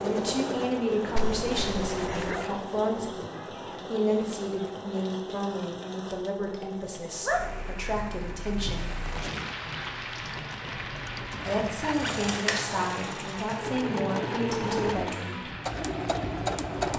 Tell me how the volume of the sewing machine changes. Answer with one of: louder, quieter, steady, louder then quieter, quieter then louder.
quieter then louder.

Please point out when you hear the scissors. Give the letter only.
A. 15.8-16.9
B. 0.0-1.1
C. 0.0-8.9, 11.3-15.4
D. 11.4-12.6
D.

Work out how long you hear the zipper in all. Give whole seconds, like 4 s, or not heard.
3 s.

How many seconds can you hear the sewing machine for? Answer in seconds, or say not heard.
17 s.